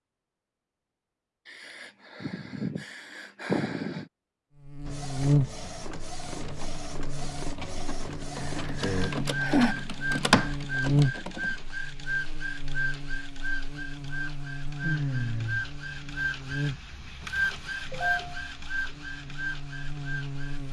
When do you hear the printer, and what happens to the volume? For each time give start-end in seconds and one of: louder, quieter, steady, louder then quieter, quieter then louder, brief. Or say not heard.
4.8-20.6 louder.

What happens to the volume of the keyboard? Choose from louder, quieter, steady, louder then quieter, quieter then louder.
louder.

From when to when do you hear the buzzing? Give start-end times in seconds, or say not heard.
4.6-20.6.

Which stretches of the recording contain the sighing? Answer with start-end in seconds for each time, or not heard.
1.6-4.0, 8.7-9.8, 14.8-15.7.